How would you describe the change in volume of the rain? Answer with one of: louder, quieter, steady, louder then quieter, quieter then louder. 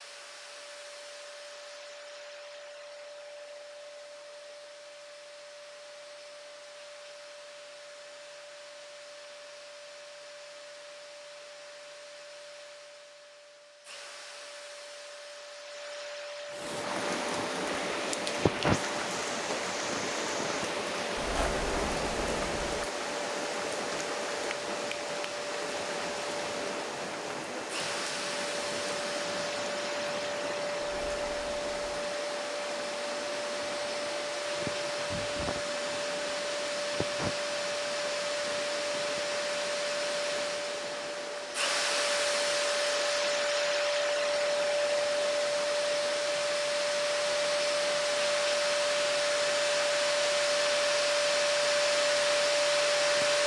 quieter.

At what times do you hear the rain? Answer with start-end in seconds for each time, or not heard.
16.5-53.4.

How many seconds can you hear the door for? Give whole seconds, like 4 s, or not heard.
3 s.